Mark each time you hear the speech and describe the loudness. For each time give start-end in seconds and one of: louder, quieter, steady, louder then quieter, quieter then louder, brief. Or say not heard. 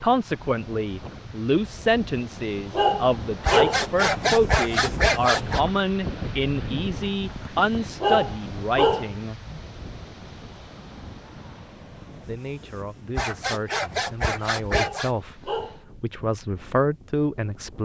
0.0-9.3 steady
12.1-17.8 louder.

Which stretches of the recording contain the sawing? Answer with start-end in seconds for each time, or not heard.
3.5-5.6, 13.2-15.1.